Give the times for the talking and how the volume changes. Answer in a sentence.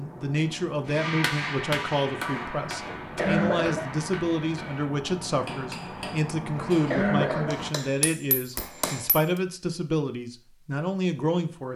You can hear the talking from 0.0 to 11.7 s, at a steady volume.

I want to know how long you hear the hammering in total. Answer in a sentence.
The hammering can be heard for 8 seconds in total.